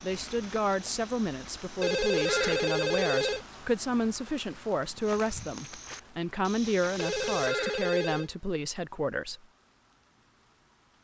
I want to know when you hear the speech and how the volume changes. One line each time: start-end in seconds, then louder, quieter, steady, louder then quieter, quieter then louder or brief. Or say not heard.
0.0-9.4 steady.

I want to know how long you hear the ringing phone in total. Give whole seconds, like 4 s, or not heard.
3 s.